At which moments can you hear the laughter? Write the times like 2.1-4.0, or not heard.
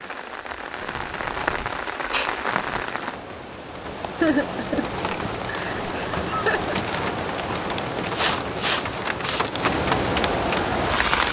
4.2-6.8.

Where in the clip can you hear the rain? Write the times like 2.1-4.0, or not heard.
0.0-11.2.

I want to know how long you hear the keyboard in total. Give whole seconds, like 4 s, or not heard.
not heard.